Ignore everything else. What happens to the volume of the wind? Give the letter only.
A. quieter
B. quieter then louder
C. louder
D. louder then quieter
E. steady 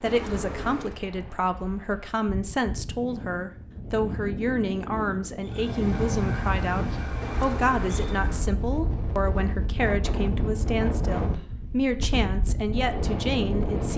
C.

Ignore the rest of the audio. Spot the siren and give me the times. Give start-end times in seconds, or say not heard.
5.4-8.3.